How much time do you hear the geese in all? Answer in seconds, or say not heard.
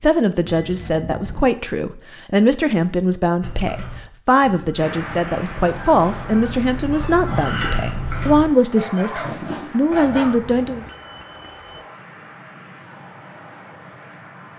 7 s.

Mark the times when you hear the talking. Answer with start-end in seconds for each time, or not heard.
0.0-10.8.